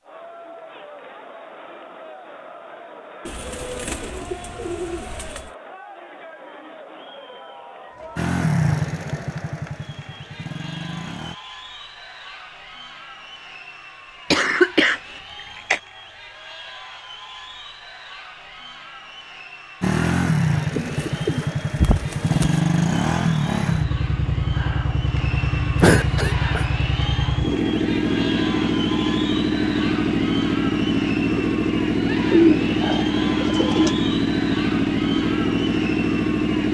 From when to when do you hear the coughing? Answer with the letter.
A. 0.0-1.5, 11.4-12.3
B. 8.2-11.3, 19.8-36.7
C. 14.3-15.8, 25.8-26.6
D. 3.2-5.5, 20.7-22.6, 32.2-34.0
C.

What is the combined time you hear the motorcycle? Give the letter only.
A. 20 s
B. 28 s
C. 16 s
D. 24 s
A.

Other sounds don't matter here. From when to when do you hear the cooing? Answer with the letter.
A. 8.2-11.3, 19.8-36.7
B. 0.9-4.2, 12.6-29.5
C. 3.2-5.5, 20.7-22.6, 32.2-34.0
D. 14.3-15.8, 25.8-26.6
C.